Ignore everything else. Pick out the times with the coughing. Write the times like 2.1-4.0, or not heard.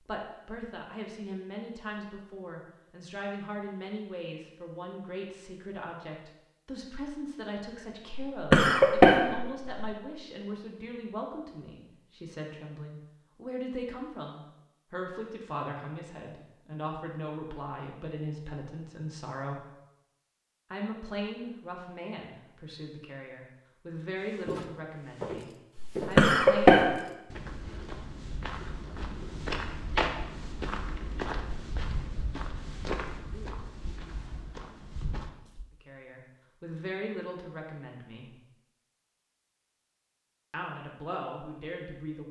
8.1-9.7, 25.8-26.9.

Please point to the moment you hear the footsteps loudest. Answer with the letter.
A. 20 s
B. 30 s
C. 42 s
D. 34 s
B.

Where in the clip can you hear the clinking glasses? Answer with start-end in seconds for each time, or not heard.
not heard.